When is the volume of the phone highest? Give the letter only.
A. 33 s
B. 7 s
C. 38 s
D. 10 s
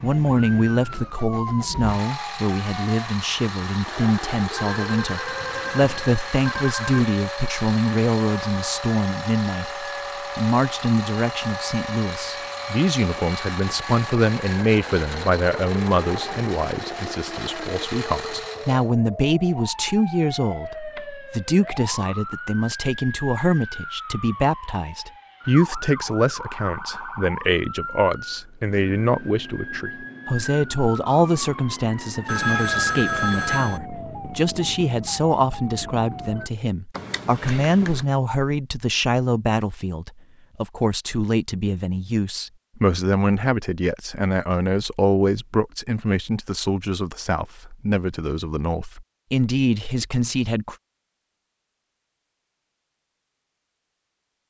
A.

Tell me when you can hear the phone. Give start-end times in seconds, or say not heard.
4.5-7.0, 32.2-33.8, 37.0-38.0.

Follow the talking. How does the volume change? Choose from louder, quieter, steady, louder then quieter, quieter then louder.
steady.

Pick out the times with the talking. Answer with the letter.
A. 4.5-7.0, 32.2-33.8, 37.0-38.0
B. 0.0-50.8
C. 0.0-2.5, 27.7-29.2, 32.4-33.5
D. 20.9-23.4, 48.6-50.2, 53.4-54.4
B.